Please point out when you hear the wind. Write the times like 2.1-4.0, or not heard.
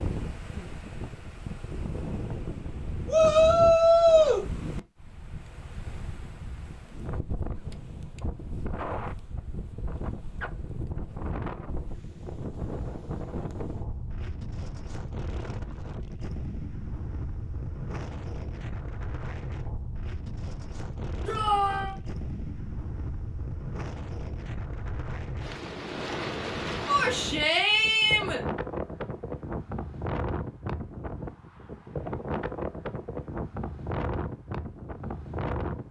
0.0-35.8.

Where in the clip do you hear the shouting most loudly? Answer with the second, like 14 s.
4 s.